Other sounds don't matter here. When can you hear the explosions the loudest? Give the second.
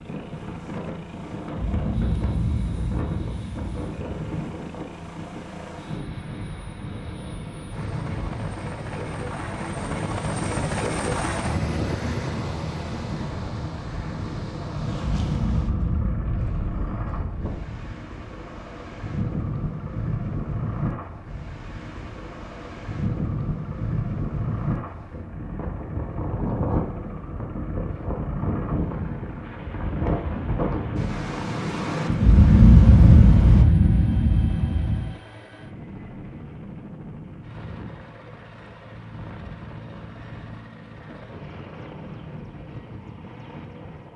33 s.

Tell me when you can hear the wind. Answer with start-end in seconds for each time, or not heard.
0.0-33.6.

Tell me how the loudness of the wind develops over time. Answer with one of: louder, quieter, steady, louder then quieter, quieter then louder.
louder.